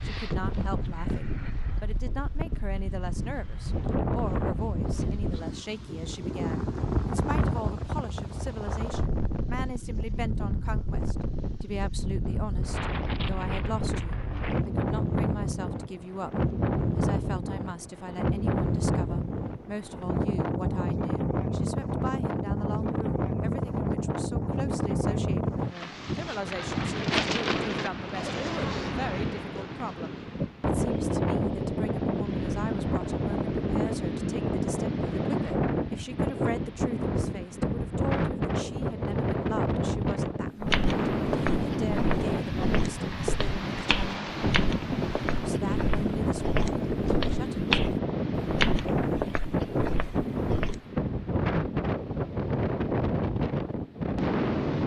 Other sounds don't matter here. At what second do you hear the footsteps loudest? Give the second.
48 s.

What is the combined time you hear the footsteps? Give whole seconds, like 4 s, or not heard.
10 s.